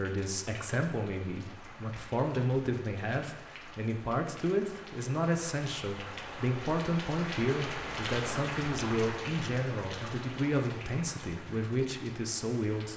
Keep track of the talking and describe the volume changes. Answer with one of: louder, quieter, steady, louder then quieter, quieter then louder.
steady.